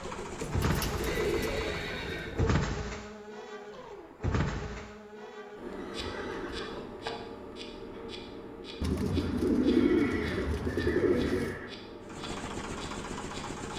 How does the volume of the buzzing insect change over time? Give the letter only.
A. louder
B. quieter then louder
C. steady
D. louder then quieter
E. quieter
E.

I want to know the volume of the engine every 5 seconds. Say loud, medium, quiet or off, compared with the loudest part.
loud, off, loud.